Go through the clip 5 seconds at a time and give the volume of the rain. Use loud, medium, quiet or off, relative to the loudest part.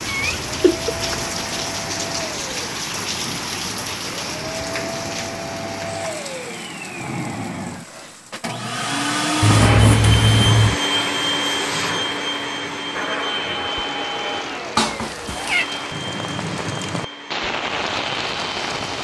loud, medium, medium, loud.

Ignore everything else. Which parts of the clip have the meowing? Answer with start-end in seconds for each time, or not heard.
0.1-1.3, 9.4-10.8, 14.8-15.7.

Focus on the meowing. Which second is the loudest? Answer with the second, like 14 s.
10 s.